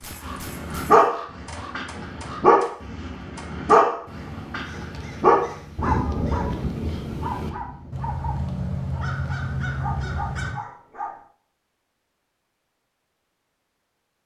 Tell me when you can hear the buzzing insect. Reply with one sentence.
You can't hear the buzzing insect here.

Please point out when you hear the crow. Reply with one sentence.
You can hear the crow from 0.0 to 10.6 s.